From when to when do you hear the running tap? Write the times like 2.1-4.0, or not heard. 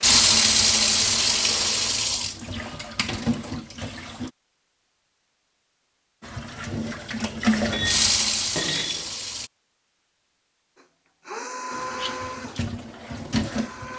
0.0-4.3, 6.2-9.5, 11.7-13.9.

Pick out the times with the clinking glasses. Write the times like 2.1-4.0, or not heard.
7.7-9.1.